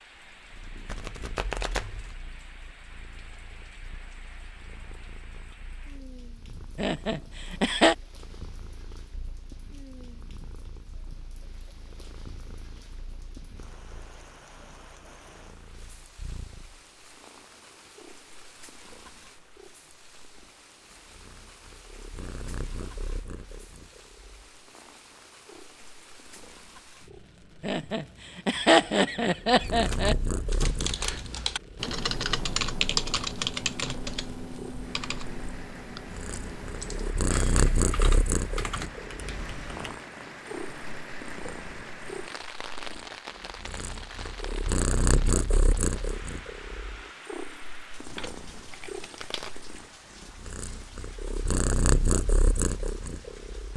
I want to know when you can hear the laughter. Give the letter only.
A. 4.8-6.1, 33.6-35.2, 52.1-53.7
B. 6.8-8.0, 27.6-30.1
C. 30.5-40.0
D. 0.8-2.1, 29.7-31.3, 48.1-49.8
B.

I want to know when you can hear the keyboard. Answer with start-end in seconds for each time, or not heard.
30.5-40.0.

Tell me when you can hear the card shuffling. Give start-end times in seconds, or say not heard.
0.8-2.1, 29.7-31.3, 48.1-49.8.